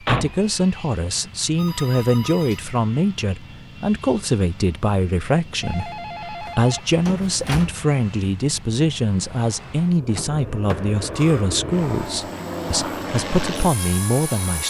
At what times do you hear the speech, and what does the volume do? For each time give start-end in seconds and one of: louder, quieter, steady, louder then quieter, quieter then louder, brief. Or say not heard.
0.1-14.6 steady.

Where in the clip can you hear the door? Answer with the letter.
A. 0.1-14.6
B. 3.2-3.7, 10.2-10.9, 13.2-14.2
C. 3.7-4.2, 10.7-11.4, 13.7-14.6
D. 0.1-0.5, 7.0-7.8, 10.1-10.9
D.